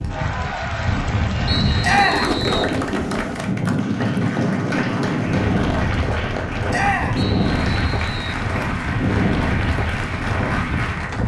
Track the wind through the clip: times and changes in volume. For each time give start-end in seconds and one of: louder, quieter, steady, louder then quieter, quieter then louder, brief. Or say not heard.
0.0-11.2 steady.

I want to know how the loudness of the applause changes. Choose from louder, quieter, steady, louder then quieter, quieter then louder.
steady.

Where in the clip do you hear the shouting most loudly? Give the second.
2 s.